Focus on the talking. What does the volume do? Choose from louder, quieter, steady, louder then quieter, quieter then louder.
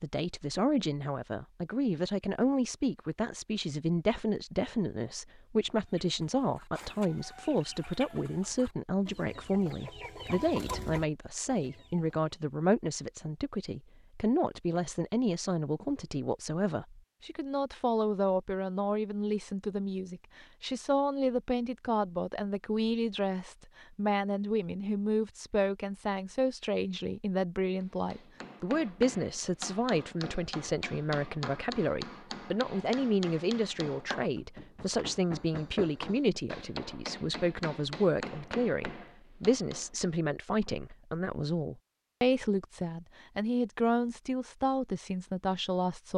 steady.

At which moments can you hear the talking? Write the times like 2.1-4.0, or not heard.
0.0-46.1.